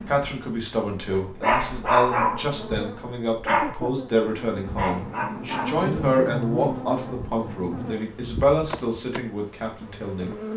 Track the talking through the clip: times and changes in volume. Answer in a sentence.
The talking can be heard from 0.1 to 10.3 s, at a steady volume.